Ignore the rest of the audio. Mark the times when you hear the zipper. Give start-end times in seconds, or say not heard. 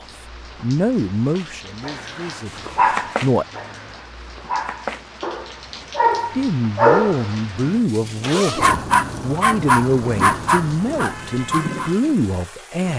8.1-9.3.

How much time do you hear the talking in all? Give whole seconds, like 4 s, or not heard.
10 s.